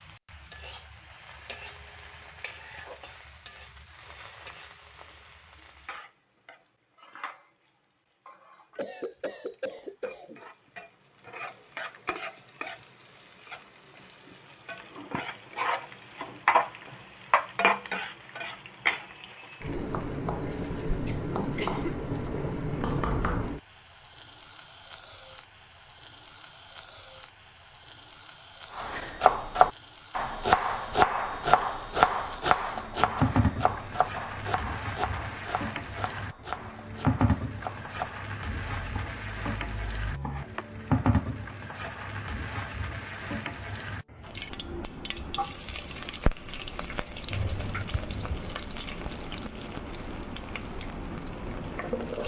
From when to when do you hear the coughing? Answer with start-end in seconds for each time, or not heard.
8.8-10.4, 21.1-21.9, 47.3-48.5.